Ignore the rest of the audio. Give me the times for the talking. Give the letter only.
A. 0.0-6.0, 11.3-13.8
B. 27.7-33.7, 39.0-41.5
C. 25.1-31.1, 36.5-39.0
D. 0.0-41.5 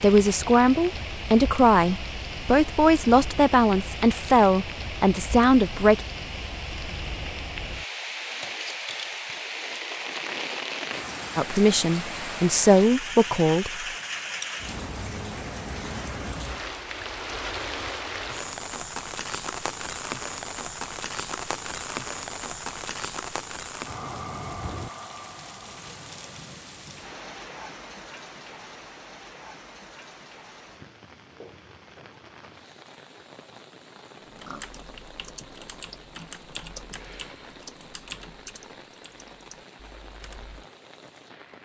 A.